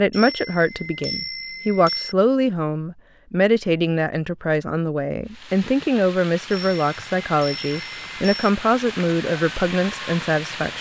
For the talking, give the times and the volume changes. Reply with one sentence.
You can hear the talking from 0.0 to 10.7 s, at a steady volume.